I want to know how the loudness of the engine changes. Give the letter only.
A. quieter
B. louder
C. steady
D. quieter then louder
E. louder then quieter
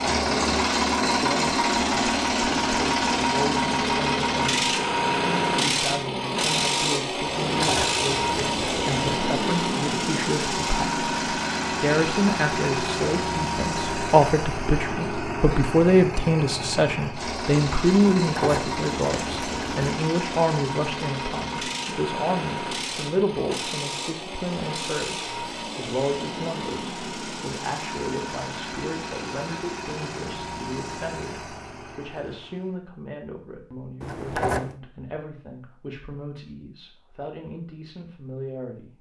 A.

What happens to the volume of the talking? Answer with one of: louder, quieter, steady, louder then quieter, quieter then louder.
louder then quieter.